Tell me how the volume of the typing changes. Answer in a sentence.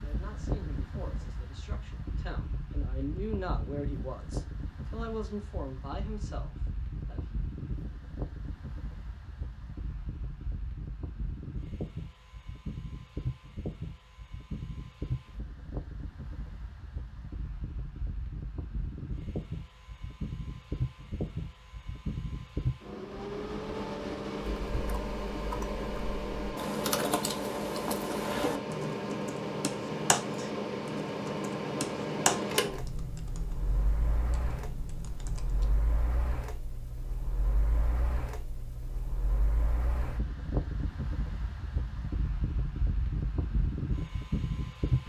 The loudness of the typing goes down.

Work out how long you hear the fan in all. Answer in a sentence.
You can hear the fan for 45 seconds altogether.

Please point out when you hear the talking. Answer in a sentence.
You can hear the talking from 0.0 to 7.3 s.